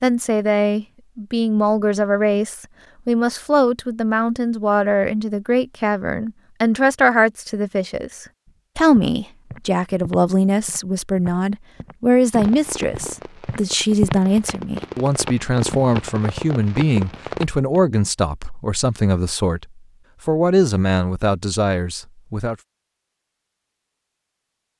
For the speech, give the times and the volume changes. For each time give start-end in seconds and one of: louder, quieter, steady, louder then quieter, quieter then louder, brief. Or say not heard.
0.0-19.6 steady
20.2-22.6 brief.